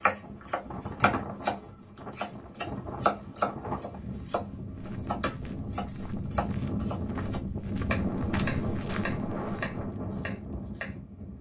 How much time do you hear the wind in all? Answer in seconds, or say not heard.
11 s.